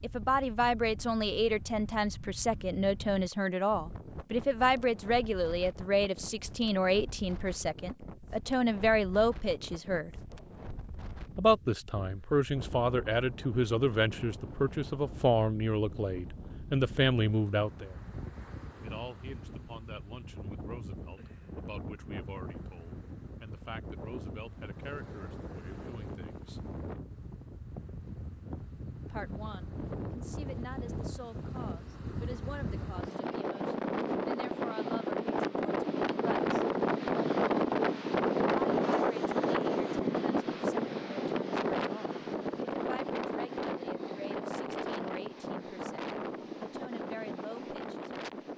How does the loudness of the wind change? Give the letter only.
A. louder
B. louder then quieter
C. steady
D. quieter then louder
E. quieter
A.